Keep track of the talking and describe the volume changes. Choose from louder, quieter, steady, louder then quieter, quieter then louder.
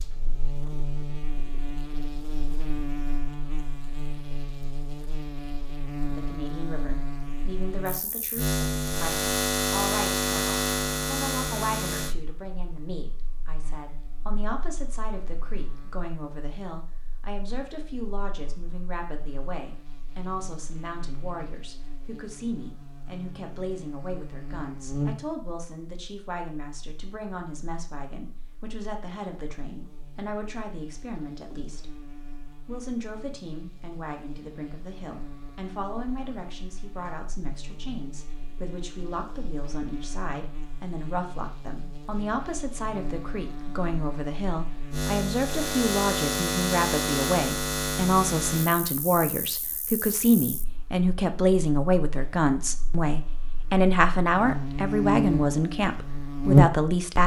louder.